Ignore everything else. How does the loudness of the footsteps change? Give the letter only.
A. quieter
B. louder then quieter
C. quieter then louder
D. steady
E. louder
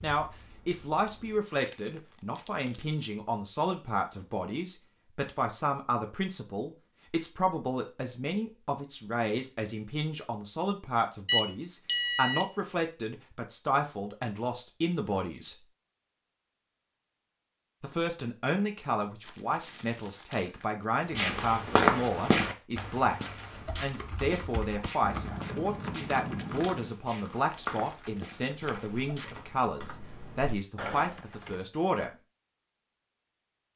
C.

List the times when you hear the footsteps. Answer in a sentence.
The footsteps can be heard from 21.1 to 29.5 s.